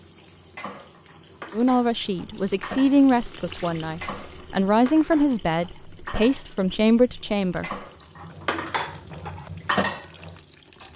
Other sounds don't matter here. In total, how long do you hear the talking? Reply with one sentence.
The talking can be heard for 6 seconds in total.